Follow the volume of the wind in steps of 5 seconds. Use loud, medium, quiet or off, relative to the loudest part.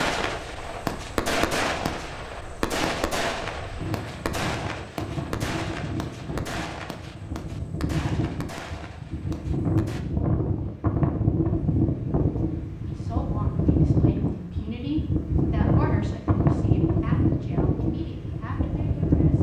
quiet, medium, loud, loud.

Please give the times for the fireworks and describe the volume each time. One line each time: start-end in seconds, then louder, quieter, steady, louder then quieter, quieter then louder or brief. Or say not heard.
0.0-10.1 quieter.